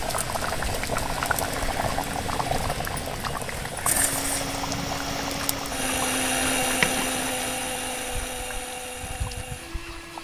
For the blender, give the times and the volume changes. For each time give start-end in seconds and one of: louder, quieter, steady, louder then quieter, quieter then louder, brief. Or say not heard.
0.0-10.1 louder then quieter.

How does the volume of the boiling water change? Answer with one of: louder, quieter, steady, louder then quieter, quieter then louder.
quieter.